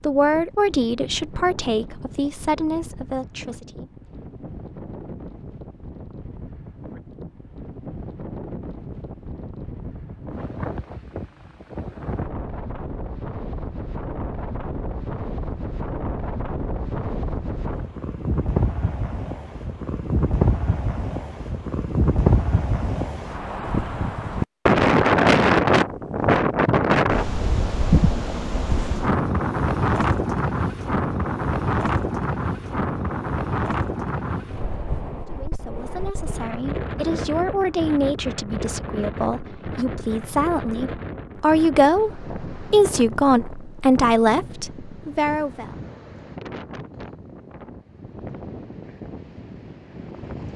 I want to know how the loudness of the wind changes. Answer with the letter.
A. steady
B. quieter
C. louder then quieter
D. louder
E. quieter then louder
C.